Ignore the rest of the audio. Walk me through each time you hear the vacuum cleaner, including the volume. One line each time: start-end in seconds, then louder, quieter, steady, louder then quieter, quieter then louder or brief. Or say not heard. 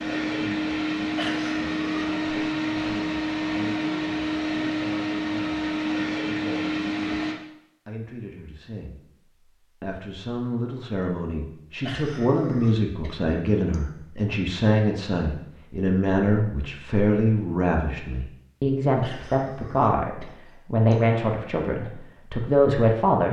0.0-7.3 steady.